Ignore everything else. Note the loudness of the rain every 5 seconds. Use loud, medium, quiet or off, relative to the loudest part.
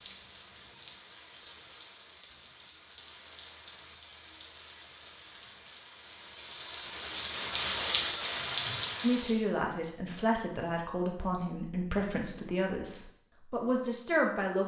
quiet, loud, off.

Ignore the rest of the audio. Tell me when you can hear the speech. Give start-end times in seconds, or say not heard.
9.0-14.6.